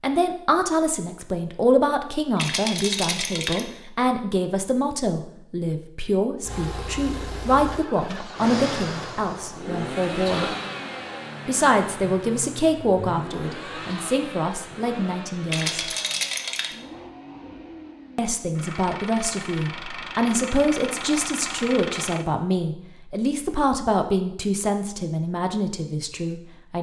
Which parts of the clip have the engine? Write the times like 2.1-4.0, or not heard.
6.4-22.2.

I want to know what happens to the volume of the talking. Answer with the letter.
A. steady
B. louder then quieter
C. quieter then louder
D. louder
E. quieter
A.